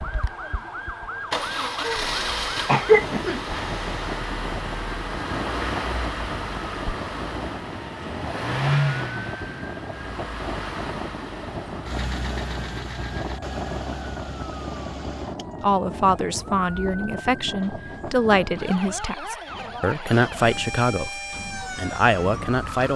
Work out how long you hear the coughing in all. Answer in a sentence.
You can hear the coughing for 2 seconds altogether.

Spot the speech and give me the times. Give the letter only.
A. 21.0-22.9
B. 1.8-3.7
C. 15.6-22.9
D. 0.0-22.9
C.